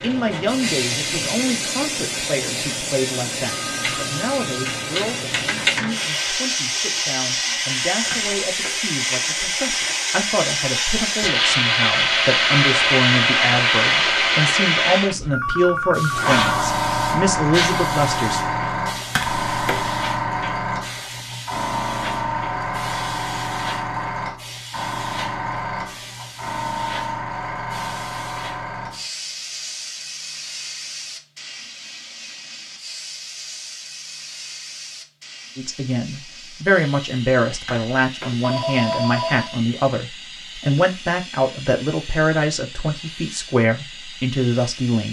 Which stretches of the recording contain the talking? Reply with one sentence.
You can hear the talking from 0.0 to 18.4 s and from 35.5 to 45.0 s.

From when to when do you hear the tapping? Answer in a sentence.
The tapping can be heard from 8.1 to 8.8 s, from 19.1 to 19.9 s and from 37.6 to 38.5 s.